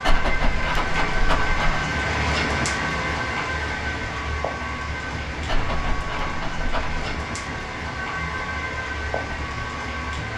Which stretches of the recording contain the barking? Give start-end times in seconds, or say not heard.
0.0-1.8, 5.5-7.0.